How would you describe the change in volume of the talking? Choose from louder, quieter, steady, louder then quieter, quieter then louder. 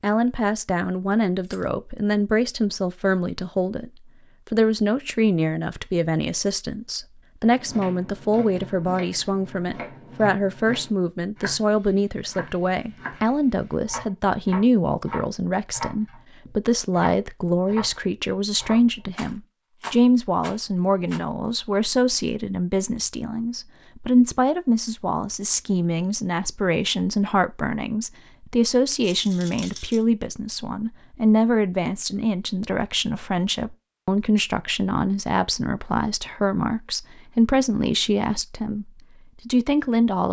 steady.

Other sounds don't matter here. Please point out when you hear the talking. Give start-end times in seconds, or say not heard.
0.0-3.9, 4.5-40.2.